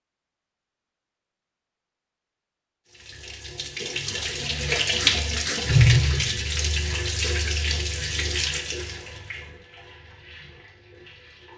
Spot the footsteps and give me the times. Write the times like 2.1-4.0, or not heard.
not heard.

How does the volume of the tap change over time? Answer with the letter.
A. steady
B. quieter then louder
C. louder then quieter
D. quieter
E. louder
C.